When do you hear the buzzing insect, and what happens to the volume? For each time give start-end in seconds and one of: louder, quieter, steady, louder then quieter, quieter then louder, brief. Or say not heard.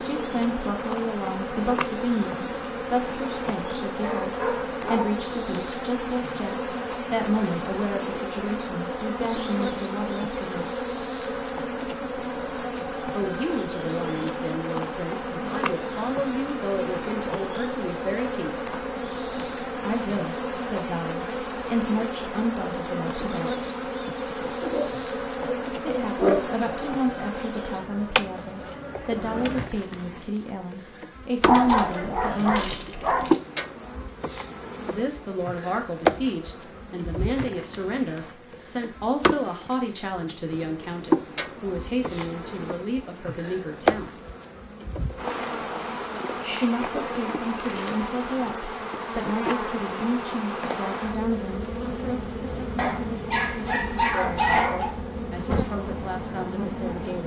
0.0-57.2 steady.